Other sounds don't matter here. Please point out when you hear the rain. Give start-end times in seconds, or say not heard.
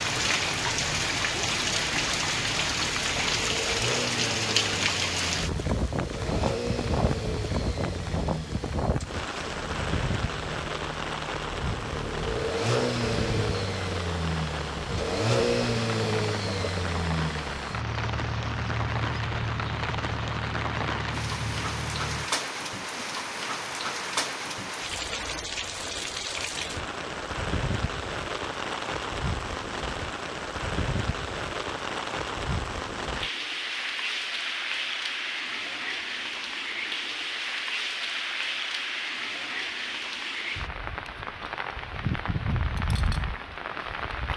0.0-44.3.